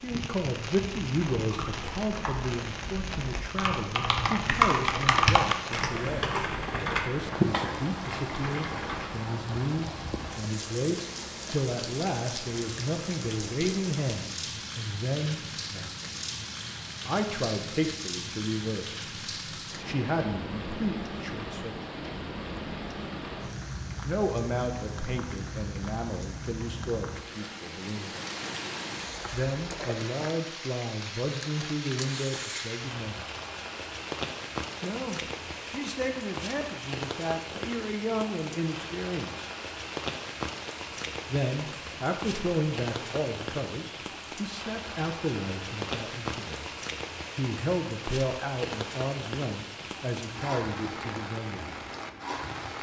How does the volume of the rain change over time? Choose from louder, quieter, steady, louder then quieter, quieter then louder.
steady.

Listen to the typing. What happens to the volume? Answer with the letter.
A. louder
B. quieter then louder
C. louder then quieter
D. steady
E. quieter
C.